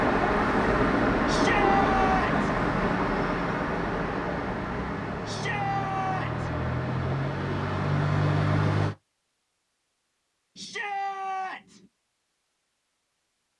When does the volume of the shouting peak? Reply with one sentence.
The loudest moment of the shouting is at 2 seconds.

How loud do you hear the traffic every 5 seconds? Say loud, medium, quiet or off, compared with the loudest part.
loud, loud, off.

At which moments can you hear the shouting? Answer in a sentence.
You can hear the shouting from 1.2 to 2.5 s, from 5.2 to 6.5 s and from 10.6 to 11.8 s.